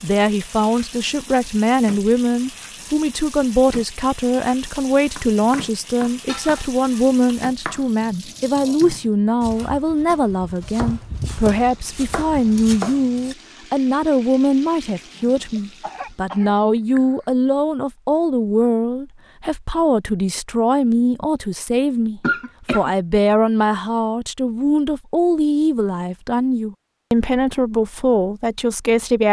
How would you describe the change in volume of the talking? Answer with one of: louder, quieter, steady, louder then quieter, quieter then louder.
steady.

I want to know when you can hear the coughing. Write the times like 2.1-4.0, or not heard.
6.2-7.5, 15.6-17.2, 22.2-22.9.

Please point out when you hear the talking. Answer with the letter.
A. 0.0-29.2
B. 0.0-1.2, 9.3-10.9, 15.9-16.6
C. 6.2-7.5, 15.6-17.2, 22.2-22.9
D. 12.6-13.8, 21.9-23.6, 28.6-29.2
A.